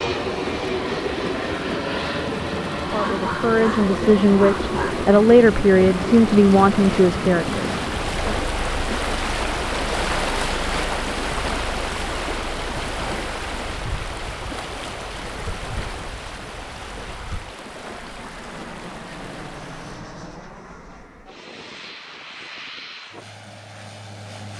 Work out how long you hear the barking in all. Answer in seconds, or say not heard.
2 s.